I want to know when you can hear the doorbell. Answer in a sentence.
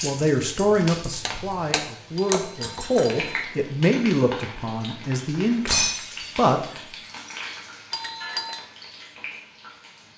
The doorbell can be heard from 2.1 to 3.5 s and from 7.9 to 8.7 s.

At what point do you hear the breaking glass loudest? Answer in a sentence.
The loudest moment of the breaking glass is at 6 seconds.